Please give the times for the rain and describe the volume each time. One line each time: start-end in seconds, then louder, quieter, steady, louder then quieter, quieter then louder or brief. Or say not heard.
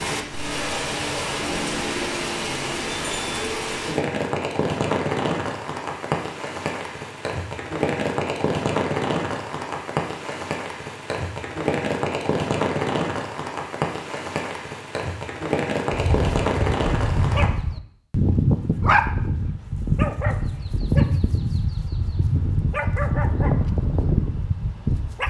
0.0-17.4 steady.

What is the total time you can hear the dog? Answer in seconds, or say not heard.
9 s.